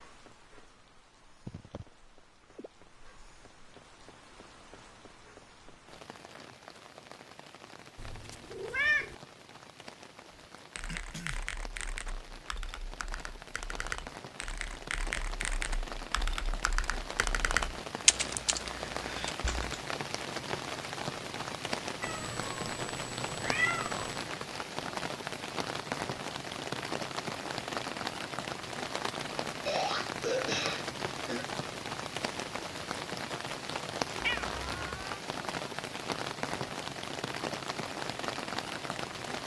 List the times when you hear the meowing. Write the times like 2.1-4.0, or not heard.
8.0-9.2, 22.0-24.2, 34.2-35.2.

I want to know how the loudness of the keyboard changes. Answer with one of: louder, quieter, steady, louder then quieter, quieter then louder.
louder.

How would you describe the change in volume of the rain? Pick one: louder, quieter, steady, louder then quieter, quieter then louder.
louder.